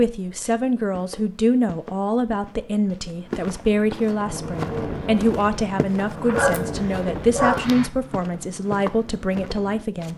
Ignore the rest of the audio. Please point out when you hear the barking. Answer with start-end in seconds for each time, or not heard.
6.0-7.7.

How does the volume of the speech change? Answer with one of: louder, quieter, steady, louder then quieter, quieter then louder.
steady.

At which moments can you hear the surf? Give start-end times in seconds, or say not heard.
not heard.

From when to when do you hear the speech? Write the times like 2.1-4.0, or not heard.
0.0-10.1.